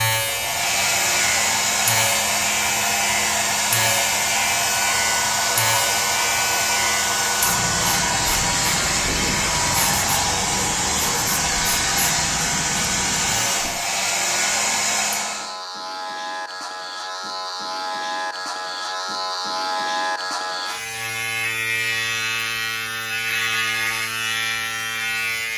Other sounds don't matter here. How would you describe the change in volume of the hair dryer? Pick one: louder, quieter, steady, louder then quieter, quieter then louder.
steady.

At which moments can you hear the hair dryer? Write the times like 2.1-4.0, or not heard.
0.1-15.6.